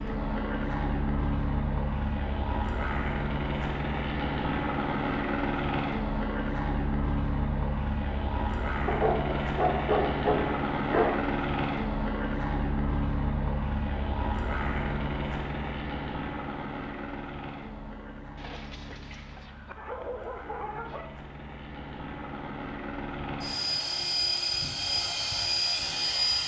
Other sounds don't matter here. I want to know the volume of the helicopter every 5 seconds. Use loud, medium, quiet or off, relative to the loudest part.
loud, loud, loud, medium, medium, loud.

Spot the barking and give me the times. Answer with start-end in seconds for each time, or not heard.
8.8-11.2, 18.4-21.1.